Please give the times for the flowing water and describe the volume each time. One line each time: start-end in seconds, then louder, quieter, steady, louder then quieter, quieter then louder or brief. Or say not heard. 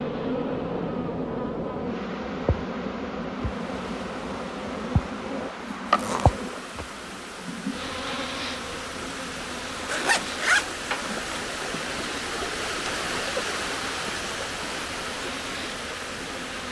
3.5-16.6 louder.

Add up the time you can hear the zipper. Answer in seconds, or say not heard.
2 s.